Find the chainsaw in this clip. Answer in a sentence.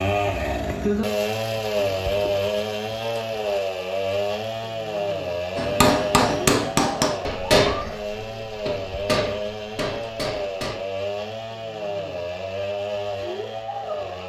You can hear the chainsaw from 0.0 to 14.2 s.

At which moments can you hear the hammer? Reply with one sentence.
You can hear the hammer from 5.5 to 10.8 s.